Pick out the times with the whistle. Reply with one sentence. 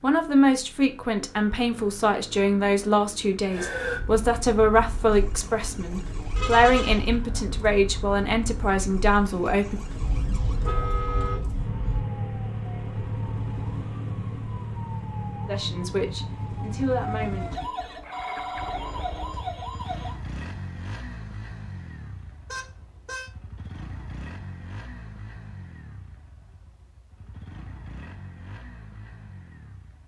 The whistle can't be heard in this clip.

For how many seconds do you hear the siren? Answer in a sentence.
You can hear the siren for 17 seconds altogether.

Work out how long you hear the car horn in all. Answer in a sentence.
The car horn can be heard for 4 seconds in total.